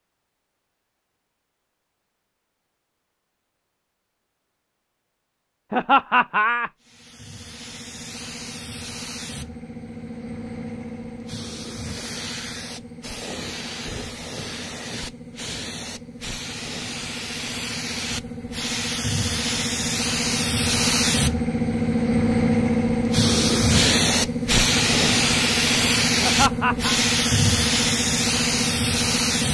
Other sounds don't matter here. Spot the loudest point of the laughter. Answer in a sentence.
The volume of the laughter peaks at 6 seconds.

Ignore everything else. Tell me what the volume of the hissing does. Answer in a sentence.
The loudness of the hissing goes up.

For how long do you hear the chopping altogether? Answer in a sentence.
The chopping can't be heard in this clip.